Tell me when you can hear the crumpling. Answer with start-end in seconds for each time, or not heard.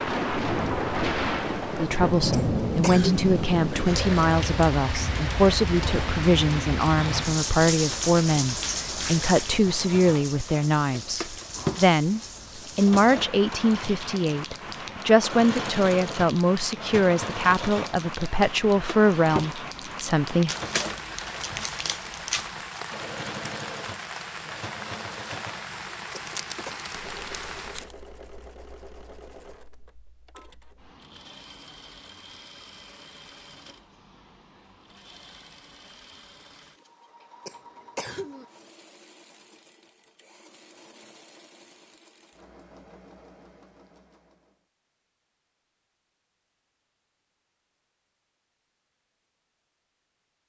20.4-22.8, 26.2-27.9.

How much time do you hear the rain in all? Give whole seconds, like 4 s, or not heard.
28 s.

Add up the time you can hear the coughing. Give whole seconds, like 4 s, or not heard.
3 s.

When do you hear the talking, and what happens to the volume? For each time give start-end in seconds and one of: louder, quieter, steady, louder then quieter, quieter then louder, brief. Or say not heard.
1.8-20.6 steady.